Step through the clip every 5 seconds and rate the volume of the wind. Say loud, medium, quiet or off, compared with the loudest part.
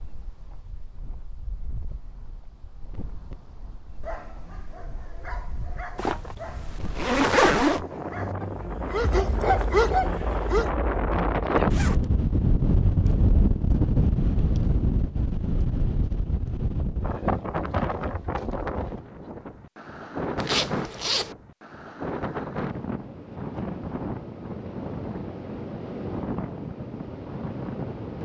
quiet, medium, loud, medium, medium, medium.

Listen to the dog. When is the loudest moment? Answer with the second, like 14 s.
10 s.